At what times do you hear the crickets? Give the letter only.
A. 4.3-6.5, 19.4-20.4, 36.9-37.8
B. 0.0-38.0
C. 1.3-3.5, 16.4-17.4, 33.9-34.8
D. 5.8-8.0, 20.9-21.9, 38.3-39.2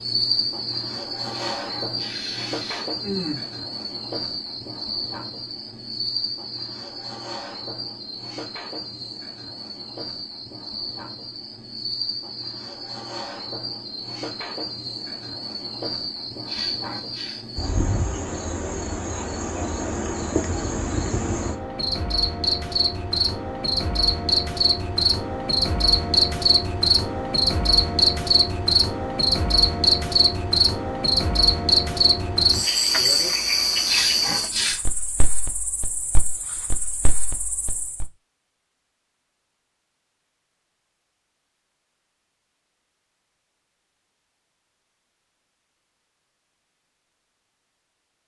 B.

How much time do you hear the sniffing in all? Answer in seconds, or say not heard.
4 s.